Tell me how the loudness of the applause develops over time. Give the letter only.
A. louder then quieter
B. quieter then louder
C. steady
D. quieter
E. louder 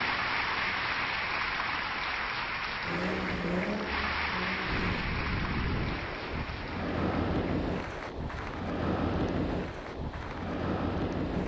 D.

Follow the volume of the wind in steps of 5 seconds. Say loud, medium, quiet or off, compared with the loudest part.
quiet, loud, loud.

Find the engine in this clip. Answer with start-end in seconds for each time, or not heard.
2.8-5.1.